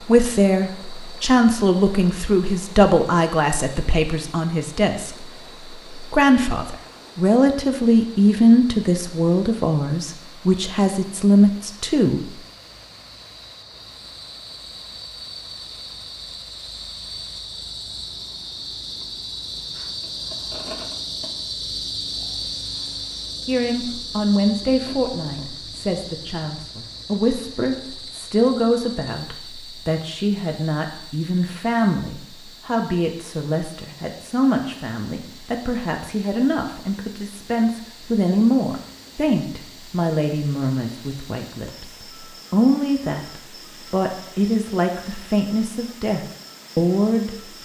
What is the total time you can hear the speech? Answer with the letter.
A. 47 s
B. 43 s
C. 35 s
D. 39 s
C.